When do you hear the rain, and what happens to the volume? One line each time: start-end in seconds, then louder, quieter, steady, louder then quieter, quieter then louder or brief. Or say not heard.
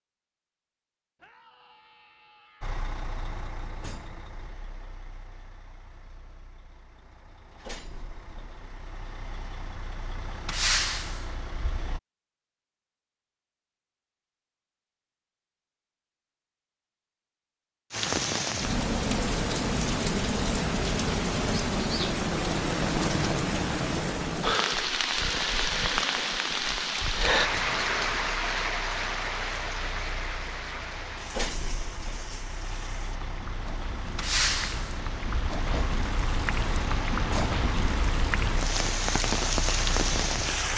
17.9-40.7 quieter then louder.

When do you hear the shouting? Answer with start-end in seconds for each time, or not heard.
1.1-2.8.